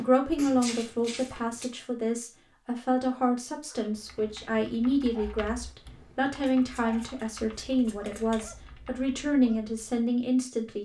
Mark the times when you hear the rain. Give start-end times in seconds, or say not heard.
not heard.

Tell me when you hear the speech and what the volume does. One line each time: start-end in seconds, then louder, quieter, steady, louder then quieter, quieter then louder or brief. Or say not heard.
0.0-10.7 steady.